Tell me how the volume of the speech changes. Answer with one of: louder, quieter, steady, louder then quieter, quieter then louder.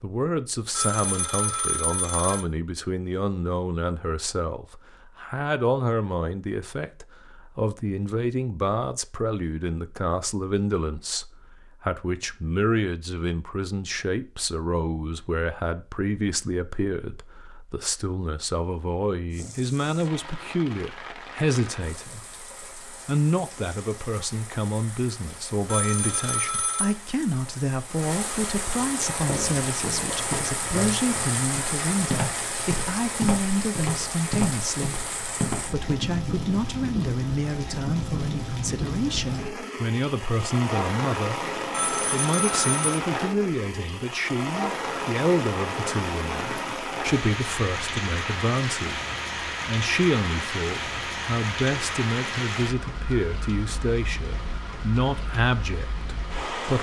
steady.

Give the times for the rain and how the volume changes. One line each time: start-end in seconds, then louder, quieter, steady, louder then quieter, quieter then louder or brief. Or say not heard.
19.3-56.7 louder.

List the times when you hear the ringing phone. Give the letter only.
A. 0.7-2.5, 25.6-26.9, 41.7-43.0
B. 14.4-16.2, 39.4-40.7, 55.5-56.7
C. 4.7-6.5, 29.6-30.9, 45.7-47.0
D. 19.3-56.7
A.